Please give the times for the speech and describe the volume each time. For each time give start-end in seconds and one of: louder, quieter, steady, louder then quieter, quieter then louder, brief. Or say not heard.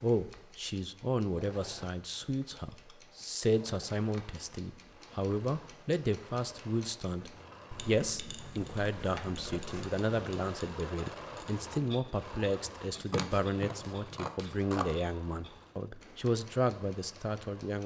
0.0-17.8 steady.